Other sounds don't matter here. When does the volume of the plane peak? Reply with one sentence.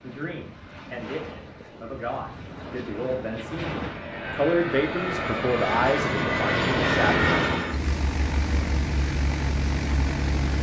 The loudest moment of the plane is at 7 seconds.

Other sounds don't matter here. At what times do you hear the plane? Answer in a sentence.
The plane can be heard from 0.0 to 10.5 s.